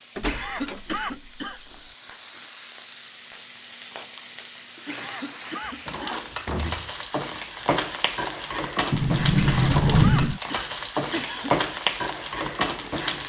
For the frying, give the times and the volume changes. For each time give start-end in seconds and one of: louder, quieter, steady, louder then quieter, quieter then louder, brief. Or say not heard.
0.0-13.2 louder.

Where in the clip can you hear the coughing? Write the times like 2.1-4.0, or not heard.
0.1-1.6, 4.8-6.8, 9.2-11.6.